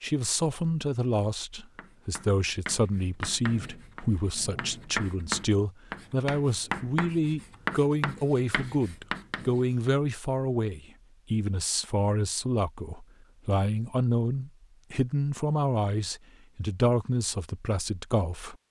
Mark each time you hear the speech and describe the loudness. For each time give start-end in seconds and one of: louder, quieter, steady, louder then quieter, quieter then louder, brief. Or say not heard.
0.0-18.6 steady.